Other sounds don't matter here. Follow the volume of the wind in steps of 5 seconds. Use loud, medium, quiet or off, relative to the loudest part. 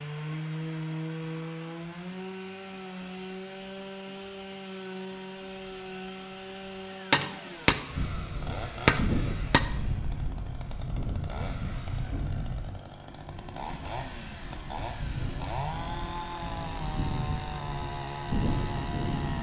off, loud, medium, loud.